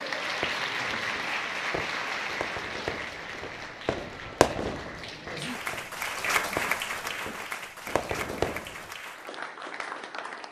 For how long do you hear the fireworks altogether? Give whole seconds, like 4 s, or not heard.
9 s.